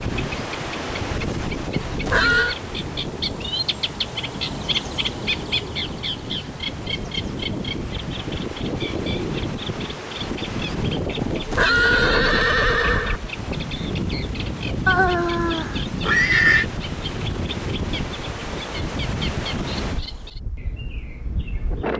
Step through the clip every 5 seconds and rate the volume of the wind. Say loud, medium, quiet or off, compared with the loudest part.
loud, loud, loud, loud, medium.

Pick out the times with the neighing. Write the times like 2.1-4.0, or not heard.
1.7-2.5, 11.2-13.2, 14.8-16.6.